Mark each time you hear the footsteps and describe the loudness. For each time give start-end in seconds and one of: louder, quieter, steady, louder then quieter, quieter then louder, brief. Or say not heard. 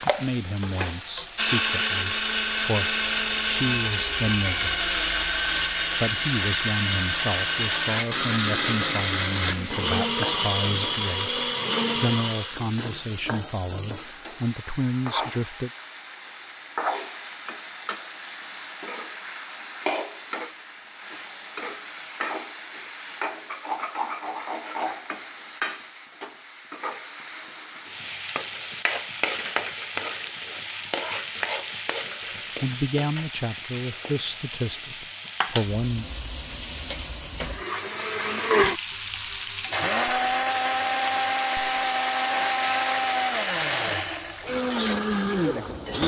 not heard.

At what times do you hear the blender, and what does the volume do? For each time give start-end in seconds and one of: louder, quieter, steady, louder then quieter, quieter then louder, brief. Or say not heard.
0.0-12.6 steady
37.4-46.0 steady.